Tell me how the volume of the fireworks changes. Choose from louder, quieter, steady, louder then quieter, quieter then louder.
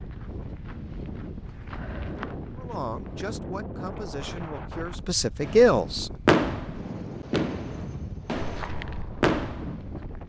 quieter then louder.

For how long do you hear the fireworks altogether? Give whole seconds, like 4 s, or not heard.
5 s.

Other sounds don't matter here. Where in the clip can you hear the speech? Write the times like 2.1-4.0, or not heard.
2.5-6.1.